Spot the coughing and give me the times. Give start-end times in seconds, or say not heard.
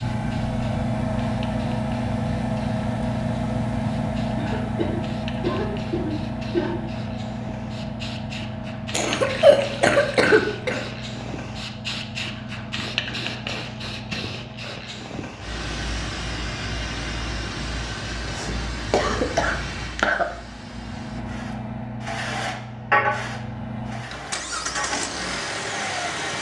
4.3-6.8, 8.9-10.8, 18.2-20.2.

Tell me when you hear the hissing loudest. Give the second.
23 s.